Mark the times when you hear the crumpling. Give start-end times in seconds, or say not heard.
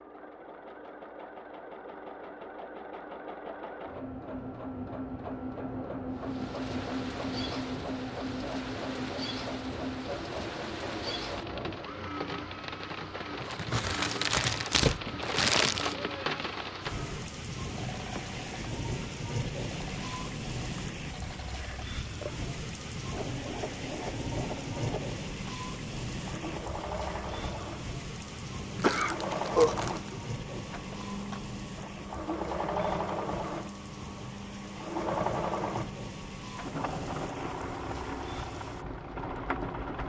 13.4-15.9, 28.8-30.1.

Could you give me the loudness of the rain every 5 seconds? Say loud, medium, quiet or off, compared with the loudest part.
off, medium, loud, loud, loud, loud, medium, medium.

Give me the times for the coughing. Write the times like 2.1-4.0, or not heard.
28.8-30.6.